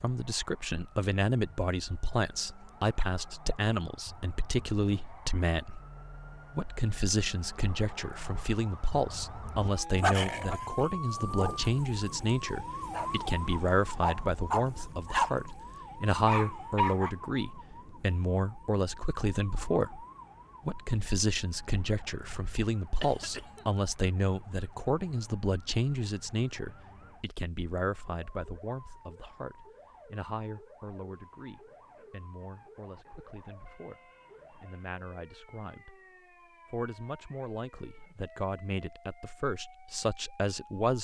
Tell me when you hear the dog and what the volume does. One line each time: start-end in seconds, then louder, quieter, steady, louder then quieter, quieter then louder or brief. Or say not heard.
9.6-15.3 quieter then louder
16.1-17.1 brief.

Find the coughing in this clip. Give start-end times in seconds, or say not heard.
23.0-23.6.